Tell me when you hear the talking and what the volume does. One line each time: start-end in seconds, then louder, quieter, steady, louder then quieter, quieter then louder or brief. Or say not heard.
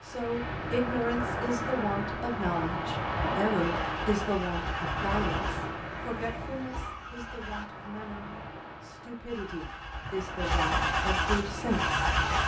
0.1-12.0 quieter then louder.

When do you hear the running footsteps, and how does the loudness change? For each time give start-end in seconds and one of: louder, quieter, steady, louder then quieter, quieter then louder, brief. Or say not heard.
not heard.